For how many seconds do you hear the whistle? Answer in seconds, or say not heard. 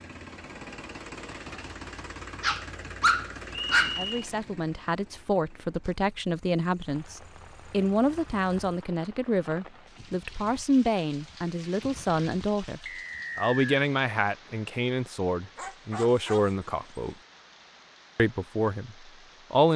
2 s.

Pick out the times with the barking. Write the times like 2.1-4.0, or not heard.
2.4-4.0, 15.6-17.1.